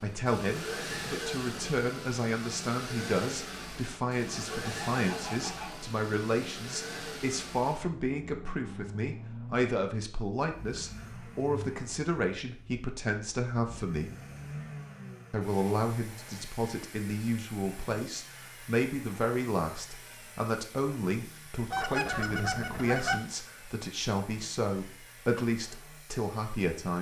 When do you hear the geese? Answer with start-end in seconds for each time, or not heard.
4.3-5.8, 21.7-23.2.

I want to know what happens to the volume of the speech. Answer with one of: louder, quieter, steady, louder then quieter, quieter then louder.
steady.